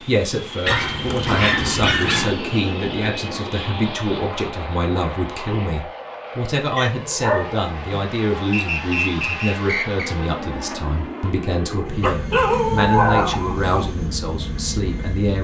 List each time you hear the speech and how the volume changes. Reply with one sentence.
You can hear the speech from 0.1 to 15.3 s, at a steady volume.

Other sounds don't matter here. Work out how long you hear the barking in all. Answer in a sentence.
The barking can be heard for 5 seconds in total.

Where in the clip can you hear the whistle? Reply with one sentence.
You can hear the whistle from 8.5 to 10.1 s.